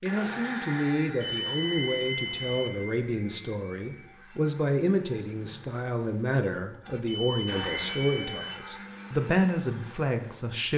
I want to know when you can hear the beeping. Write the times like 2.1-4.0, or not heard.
1.1-2.7, 7.0-8.6.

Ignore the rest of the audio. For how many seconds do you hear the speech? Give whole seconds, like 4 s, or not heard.
11 s.